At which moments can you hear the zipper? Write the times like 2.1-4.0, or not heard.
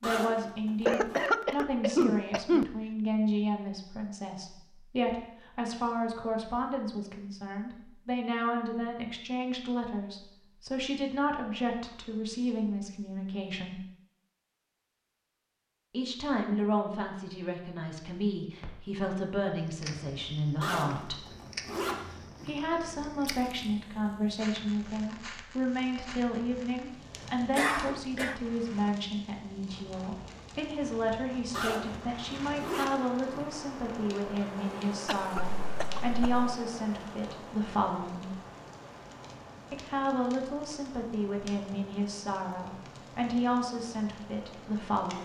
0.0-1.2, 20.6-22.6, 31.5-33.5.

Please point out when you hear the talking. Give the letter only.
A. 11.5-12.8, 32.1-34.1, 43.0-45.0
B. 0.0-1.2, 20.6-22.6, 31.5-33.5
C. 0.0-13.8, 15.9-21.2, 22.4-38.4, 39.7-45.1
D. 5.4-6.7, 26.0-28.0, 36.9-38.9
C.